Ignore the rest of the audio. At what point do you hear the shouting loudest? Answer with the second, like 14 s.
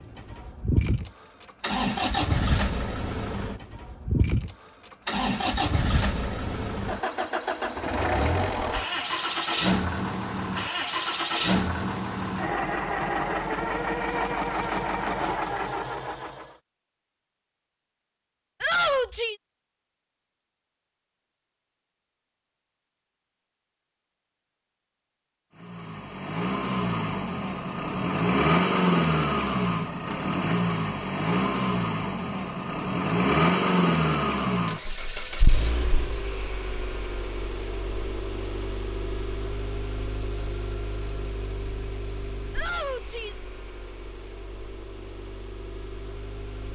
19 s.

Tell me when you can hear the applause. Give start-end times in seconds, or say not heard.
not heard.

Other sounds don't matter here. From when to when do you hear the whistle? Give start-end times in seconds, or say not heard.
not heard.